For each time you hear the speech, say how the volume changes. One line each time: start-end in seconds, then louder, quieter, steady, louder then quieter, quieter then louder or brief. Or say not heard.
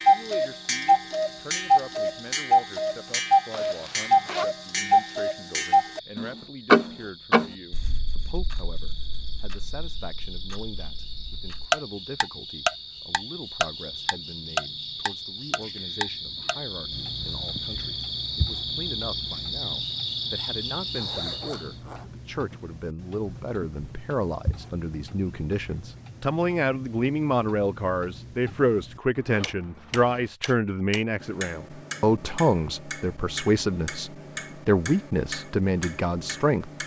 0.1-36.7 louder.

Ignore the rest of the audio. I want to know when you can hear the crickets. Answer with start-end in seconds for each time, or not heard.
0.0-21.8.